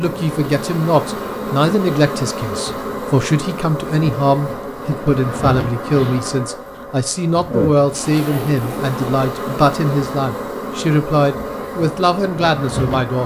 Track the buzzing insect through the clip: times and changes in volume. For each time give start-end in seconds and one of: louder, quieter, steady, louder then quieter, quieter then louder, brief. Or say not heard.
0.0-13.2 steady.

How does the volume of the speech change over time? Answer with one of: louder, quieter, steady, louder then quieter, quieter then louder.
steady.